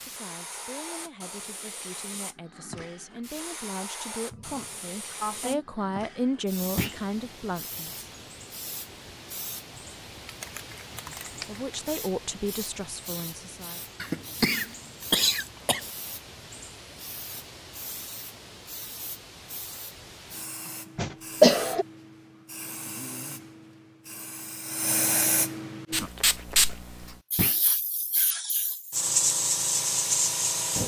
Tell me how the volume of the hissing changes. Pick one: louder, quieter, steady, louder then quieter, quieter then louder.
louder.